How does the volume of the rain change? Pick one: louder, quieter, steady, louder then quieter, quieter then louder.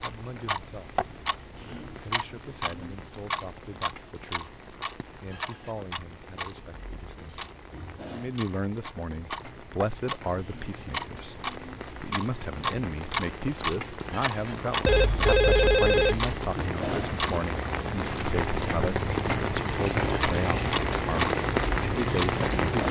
louder.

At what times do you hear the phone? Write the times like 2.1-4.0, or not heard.
14.8-16.3.